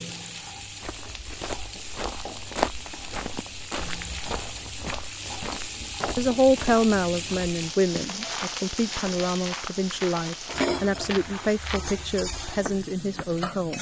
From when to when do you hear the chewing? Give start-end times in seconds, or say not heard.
not heard.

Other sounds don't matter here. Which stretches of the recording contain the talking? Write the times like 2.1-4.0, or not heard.
6.2-13.7.